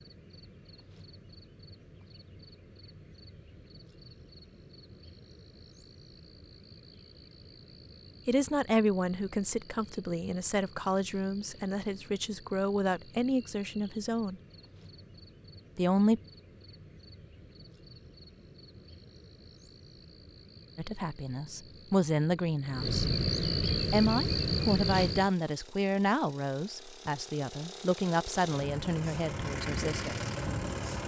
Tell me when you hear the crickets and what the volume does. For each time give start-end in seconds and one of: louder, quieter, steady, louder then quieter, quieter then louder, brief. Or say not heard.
0.0-25.3 louder.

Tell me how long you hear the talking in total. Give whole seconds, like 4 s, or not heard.
15 s.